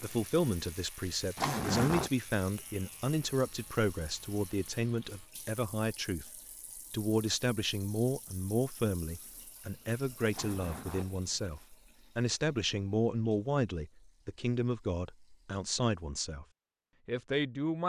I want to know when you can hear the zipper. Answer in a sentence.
You can hear the zipper from 1.4 to 2.1 s and from 10.3 to 11.7 s.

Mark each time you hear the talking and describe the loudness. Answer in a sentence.
You can hear the talking from 0.0 to 16.4 s, at a steady volume; and briefly from 17.1 to 17.8 s.